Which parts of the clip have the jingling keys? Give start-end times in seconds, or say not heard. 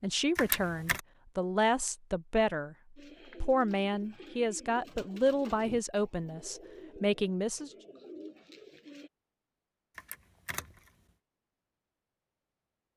0.3-1.0, 9.9-10.9.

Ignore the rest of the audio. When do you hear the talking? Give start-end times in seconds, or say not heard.
0.0-2.8, 3.4-7.7.